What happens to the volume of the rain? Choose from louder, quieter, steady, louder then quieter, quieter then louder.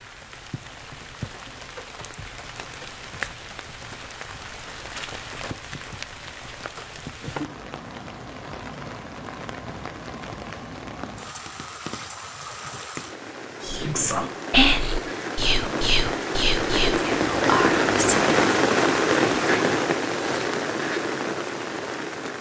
louder.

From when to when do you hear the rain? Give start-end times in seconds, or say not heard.
0.0-22.3.